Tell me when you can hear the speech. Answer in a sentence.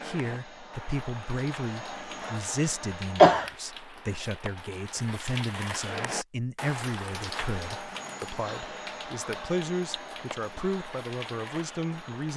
The speech can be heard from 0.0 to 12.3 s.